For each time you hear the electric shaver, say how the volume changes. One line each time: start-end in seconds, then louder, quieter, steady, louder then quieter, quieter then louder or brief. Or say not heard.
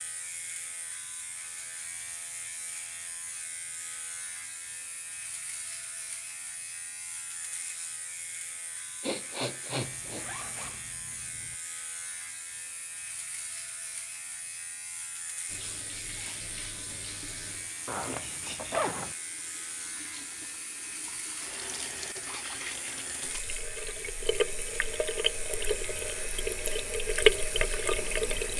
0.0-28.5 steady.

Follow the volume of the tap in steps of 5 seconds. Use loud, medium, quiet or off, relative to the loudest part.
off, off, off, quiet, medium, loud.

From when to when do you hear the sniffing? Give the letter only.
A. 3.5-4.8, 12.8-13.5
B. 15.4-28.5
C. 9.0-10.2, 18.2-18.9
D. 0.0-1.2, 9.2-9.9
C.